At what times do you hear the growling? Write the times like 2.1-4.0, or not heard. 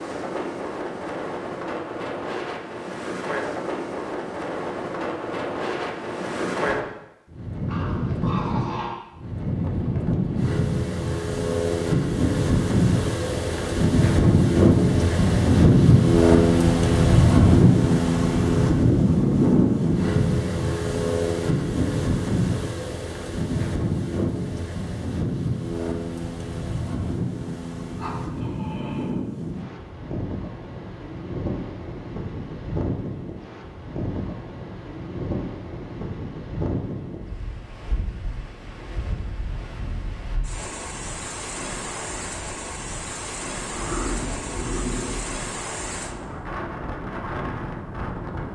7.7-8.9, 27.9-29.1, 43.7-45.5.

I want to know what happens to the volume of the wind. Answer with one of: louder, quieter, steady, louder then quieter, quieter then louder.
louder then quieter.